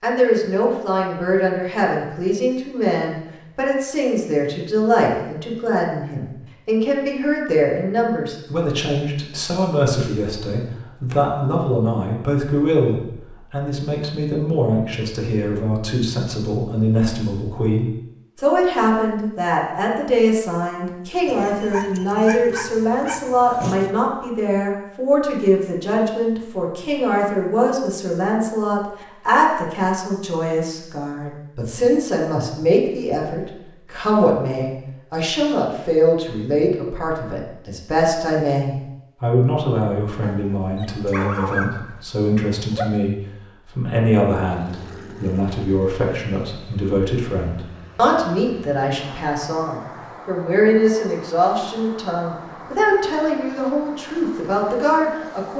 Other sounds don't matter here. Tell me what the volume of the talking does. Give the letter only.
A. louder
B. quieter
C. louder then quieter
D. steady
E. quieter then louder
D.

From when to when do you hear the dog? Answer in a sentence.
You can hear the dog from 21.2 to 23.9 s and from 40.2 to 42.9 s.